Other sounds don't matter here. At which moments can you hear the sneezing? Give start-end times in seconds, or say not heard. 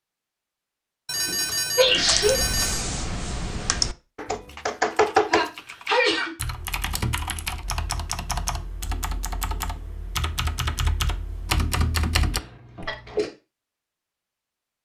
1.8-2.4, 5.3-6.3, 12.3-13.3.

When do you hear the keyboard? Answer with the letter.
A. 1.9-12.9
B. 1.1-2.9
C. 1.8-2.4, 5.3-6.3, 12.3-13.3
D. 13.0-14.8
A.